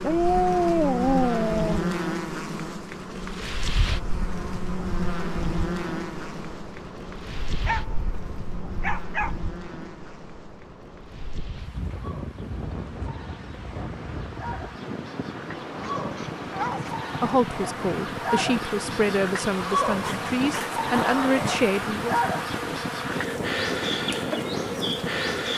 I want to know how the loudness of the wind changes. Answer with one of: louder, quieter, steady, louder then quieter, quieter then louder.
louder.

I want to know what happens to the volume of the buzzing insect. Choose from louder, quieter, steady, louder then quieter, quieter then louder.
quieter then louder.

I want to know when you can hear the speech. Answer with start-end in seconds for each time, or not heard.
17.2-22.1.